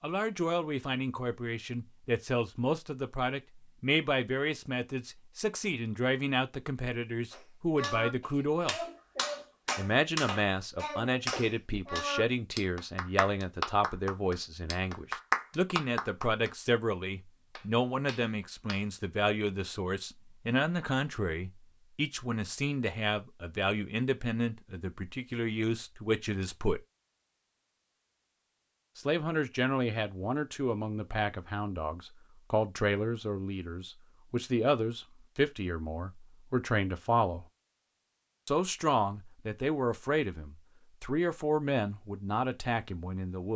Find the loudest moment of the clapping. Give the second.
15 s.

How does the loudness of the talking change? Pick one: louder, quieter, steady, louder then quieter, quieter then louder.
steady.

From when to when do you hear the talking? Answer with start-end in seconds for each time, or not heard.
0.0-8.8, 9.8-26.8, 28.9-37.5, 38.5-43.5.